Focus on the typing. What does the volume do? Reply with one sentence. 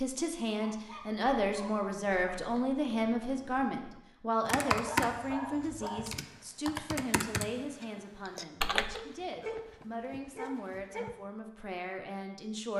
The volume of the typing goes up, then down.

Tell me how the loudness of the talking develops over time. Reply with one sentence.
The loudness of the talking goes down.